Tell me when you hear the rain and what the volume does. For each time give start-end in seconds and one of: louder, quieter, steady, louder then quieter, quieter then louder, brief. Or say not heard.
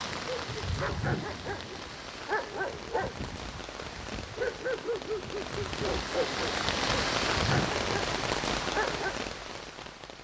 0.0-10.1 louder.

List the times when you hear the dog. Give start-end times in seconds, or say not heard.
0.3-9.2.